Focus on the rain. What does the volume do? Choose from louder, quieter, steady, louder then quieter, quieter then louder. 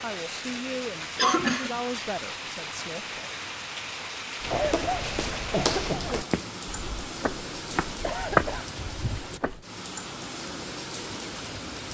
steady.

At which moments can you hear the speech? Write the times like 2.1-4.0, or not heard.
0.0-3.3.